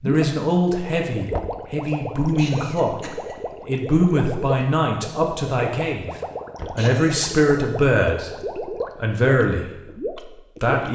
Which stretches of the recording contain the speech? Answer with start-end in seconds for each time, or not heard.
0.0-6.1, 6.8-8.3, 8.9-10.9.